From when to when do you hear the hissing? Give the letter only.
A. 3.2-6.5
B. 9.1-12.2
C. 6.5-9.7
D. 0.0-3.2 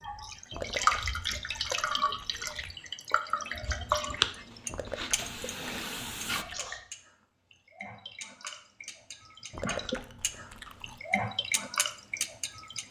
A.